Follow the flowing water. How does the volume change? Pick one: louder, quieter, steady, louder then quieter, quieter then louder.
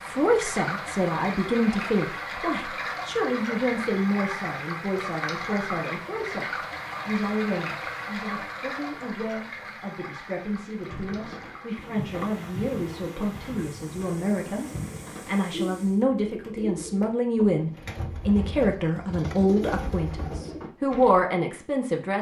quieter.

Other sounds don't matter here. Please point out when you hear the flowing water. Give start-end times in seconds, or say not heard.
0.0-16.1.